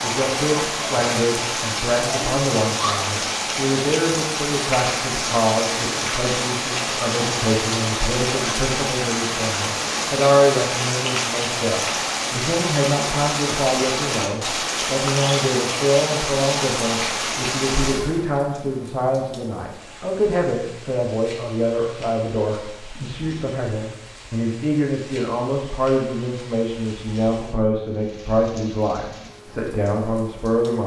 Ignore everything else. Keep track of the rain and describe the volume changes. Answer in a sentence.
The volume of the rain goes down.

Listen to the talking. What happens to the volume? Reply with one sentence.
The loudness of the talking stays about the same.